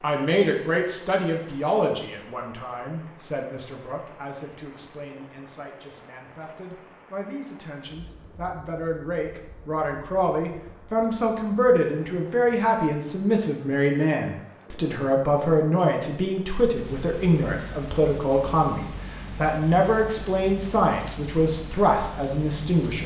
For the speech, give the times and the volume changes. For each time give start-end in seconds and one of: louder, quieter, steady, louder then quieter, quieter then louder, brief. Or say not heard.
0.0-23.0 quieter then louder.